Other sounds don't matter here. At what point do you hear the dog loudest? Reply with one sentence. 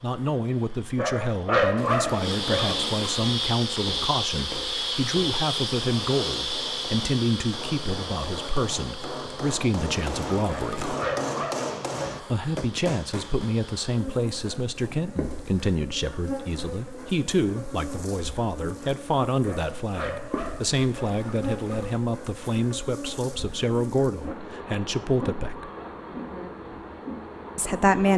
The loudest moment of the dog is at 2 seconds.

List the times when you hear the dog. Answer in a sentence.
You can hear the dog from 0.9 to 2.8 s, from 10.4 to 12.3 s and from 19.4 to 21.2 s.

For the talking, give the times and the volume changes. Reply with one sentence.
You can hear the talking from 0.0 to 10.9 s, at a steady volume; from 12.2 to 25.7 s, at a steady volume; and briefly from 27.6 to 28.1 s.